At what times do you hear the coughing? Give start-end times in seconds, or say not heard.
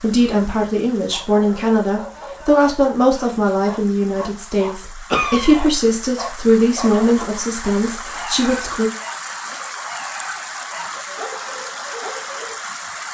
5.1-5.7.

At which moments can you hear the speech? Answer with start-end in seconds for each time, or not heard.
0.0-8.9.